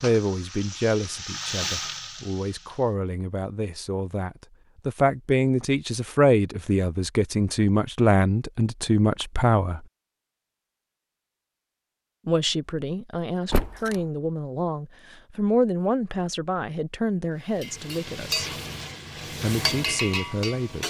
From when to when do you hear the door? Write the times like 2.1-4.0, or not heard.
13.5-13.9.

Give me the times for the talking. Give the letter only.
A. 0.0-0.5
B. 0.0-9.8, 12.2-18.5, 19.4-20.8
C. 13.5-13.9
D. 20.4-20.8
B.